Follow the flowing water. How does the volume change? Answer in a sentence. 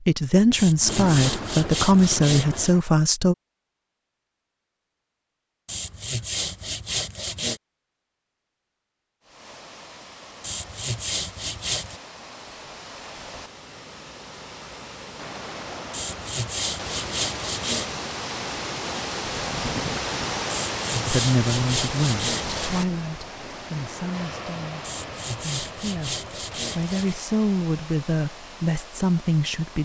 The volume of the flowing water goes up, then down.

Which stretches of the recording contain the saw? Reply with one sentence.
The saw can be heard from 0.5 to 2.7 s, from 5.7 to 7.6 s, from 10.4 to 12.0 s, from 15.9 to 17.9 s, from 20.4 to 22.8 s and from 24.8 to 27.1 s.